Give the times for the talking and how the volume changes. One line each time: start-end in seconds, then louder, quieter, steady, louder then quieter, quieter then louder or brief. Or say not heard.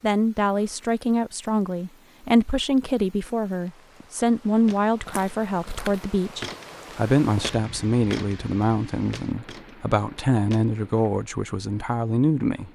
0.0-12.7 steady.